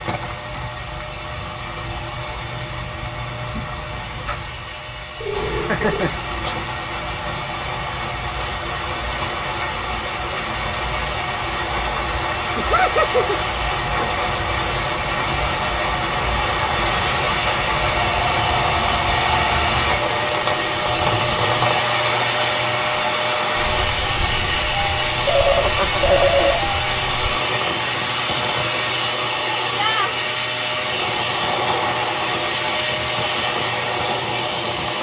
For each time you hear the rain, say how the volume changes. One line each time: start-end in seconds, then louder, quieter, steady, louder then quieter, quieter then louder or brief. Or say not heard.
0.0-34.9 louder then quieter.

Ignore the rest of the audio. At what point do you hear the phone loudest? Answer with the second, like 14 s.
26 s.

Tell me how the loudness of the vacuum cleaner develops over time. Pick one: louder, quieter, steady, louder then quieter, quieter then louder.
louder.